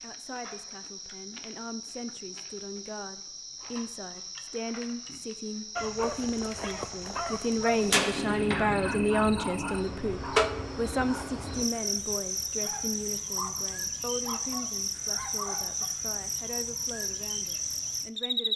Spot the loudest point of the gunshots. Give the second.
8 s.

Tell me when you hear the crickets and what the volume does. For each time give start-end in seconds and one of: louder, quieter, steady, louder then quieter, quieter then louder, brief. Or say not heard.
0.0-18.5 louder.